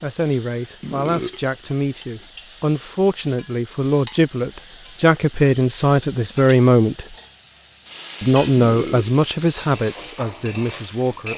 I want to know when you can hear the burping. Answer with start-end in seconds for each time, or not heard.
0.8-1.4, 8.6-9.2.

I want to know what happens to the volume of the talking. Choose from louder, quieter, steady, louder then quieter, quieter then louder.
louder then quieter.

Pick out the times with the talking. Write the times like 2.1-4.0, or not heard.
0.0-7.0, 8.2-11.3.